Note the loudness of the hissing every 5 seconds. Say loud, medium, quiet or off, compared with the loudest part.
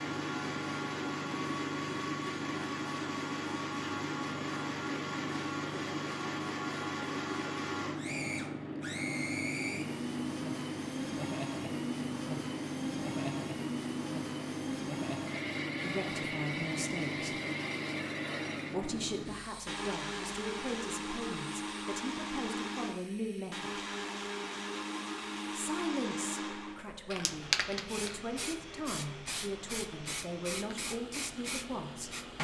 loud, loud, loud, loud, quiet, loud, loud.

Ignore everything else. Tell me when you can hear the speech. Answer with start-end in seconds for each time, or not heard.
15.8-17.4, 18.7-23.9, 25.5-32.2.